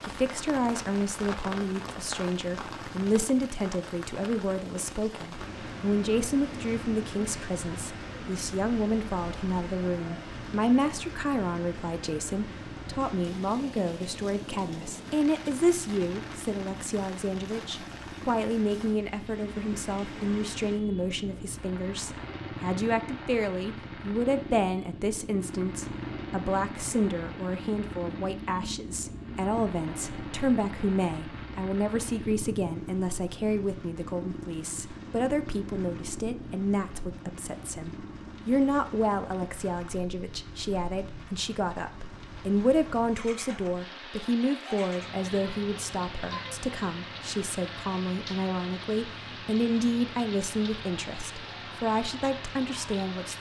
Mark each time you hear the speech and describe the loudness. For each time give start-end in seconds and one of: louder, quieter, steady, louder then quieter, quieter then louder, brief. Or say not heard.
0.0-53.3 steady.